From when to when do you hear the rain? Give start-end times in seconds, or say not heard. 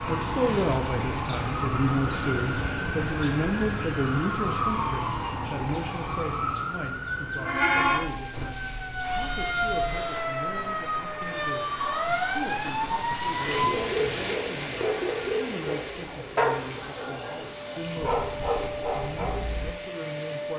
7.8-20.5.